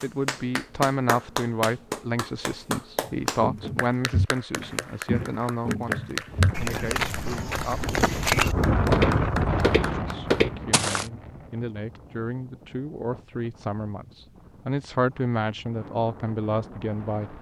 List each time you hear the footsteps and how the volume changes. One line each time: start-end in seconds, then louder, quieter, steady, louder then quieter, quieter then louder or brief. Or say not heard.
3.0-11.1 louder.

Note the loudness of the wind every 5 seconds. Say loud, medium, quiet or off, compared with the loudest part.
off, loud, quiet, quiet.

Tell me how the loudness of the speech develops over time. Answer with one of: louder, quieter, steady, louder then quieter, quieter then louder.
quieter then louder.